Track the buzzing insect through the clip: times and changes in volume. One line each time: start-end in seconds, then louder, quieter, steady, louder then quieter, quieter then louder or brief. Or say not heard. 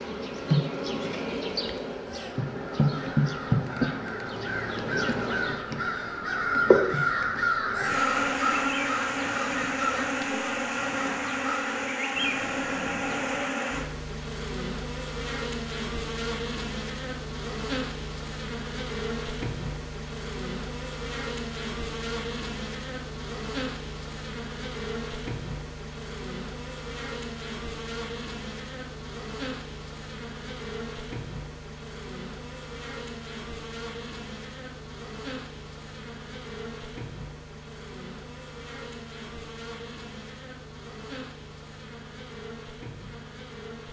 0.0-43.8 quieter.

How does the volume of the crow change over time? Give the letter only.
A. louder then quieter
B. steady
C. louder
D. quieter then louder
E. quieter
A.